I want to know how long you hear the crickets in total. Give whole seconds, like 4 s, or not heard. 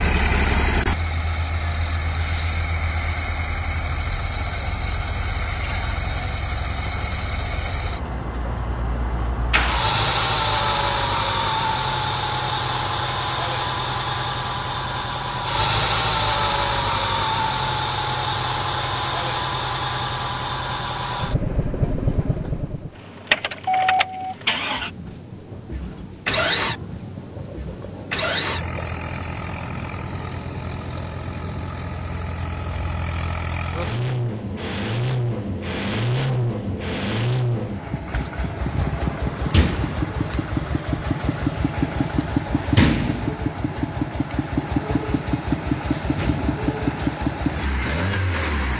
49 s.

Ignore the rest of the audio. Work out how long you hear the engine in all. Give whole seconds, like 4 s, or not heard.
49 s.